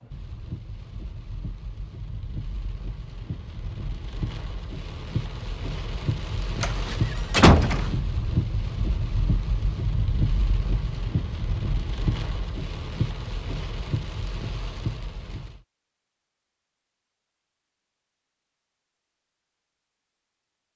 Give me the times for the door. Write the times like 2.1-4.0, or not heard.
6.6-8.0.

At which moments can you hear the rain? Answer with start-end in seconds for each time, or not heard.
0.0-15.6.